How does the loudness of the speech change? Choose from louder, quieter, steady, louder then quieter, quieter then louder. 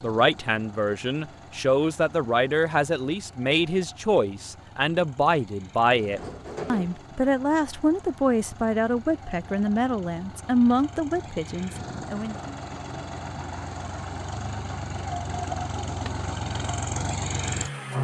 steady.